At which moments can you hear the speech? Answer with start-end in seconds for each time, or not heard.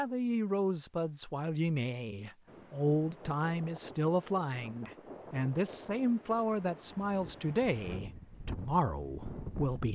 0.0-9.9.